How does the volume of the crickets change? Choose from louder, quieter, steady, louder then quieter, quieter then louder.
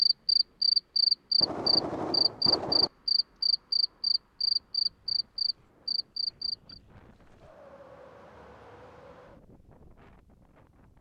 quieter.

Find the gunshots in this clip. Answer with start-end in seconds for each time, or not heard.
1.4-2.9.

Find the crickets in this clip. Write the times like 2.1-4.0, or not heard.
0.0-6.8.